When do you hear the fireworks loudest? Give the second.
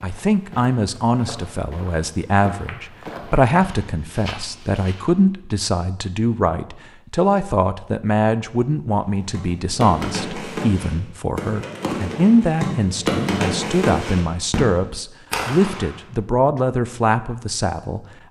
13 s.